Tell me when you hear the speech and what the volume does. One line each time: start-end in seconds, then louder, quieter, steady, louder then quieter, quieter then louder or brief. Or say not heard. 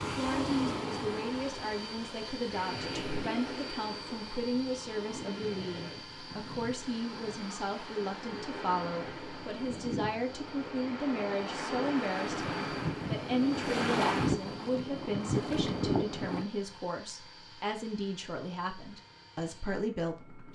0.0-20.5 steady.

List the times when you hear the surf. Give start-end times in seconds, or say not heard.
0.0-16.4.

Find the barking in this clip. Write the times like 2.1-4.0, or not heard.
not heard.